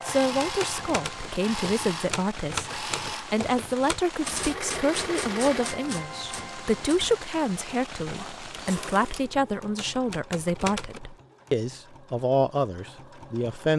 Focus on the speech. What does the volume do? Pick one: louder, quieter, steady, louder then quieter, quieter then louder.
steady.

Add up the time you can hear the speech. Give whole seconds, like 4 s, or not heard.
14 s.